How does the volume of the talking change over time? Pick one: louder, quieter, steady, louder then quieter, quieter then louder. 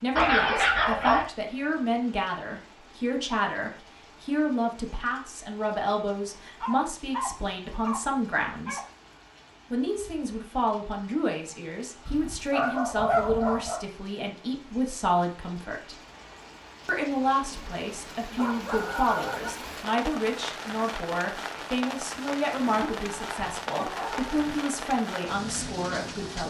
steady.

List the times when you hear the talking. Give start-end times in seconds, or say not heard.
0.0-8.8, 9.7-15.9, 16.9-26.4.